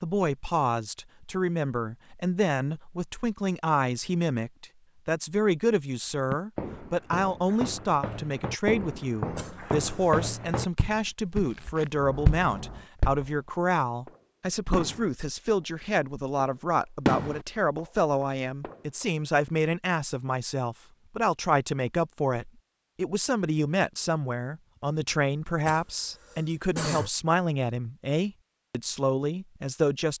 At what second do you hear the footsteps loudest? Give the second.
12 s.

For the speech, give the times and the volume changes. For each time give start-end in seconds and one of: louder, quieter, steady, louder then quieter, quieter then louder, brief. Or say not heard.
0.0-30.1 steady.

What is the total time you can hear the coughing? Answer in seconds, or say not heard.
2 s.